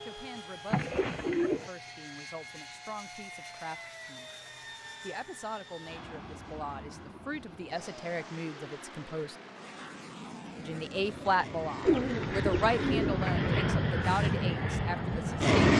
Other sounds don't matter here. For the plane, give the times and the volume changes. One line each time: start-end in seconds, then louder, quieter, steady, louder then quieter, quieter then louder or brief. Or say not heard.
0.0-15.7 louder.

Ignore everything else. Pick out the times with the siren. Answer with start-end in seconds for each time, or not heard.
not heard.